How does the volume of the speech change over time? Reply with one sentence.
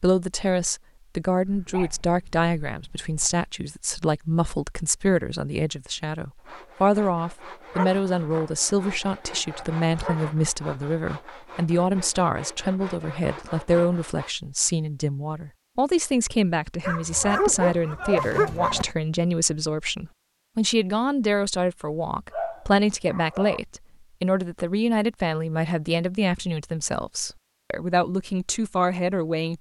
The volume of the speech stays about the same.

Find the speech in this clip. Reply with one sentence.
The speech can be heard from 0.0 to 29.5 s.